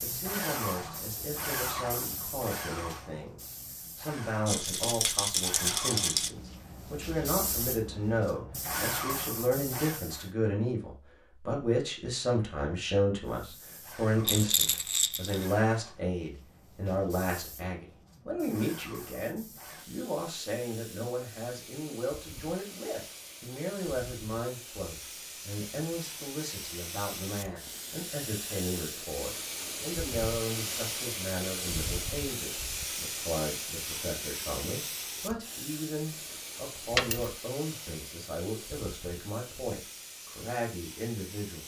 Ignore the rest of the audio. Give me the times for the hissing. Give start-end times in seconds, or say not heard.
0.0-10.3, 13.2-41.6.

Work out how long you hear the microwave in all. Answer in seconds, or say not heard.
not heard.